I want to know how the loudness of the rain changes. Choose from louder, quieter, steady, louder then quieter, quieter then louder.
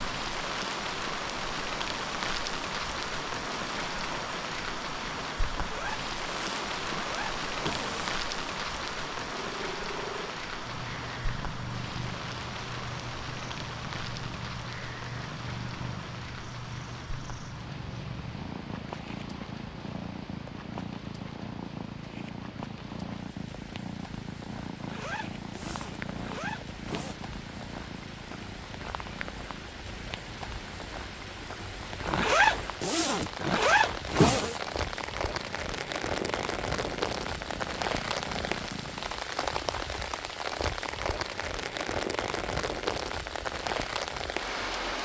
quieter then louder.